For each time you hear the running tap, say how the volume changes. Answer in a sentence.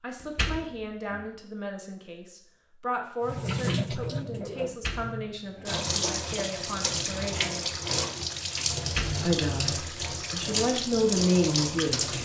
The running tap can be heard from 3.2 to 12.1 s, at a steady volume.